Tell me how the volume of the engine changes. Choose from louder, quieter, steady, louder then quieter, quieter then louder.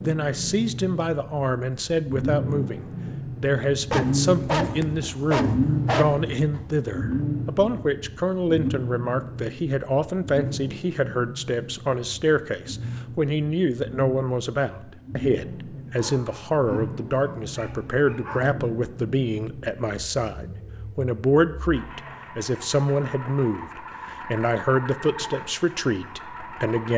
quieter.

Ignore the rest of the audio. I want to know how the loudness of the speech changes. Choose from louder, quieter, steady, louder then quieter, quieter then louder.
steady.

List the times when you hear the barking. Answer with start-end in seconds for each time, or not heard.
3.9-6.6, 15.9-18.6.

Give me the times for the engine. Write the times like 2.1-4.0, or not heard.
0.0-26.9.